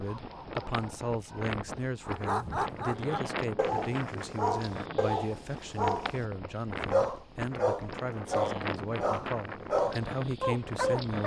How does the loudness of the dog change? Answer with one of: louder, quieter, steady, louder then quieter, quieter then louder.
louder.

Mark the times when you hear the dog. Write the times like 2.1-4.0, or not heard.
0.0-6.2, 6.9-11.2.